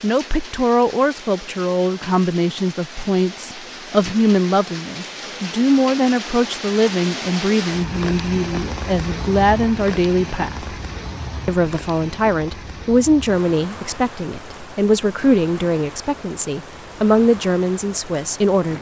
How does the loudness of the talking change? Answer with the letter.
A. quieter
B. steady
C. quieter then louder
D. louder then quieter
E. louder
B.